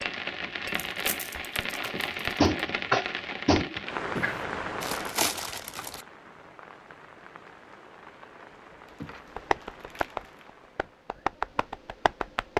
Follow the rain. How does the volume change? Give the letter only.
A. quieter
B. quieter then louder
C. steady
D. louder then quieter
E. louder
A.